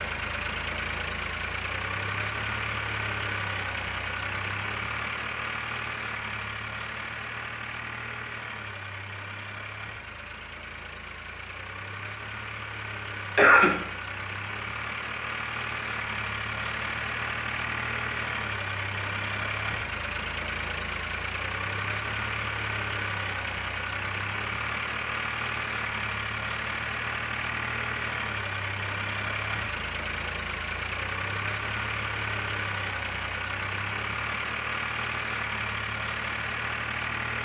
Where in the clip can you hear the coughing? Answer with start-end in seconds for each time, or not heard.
13.3-13.8.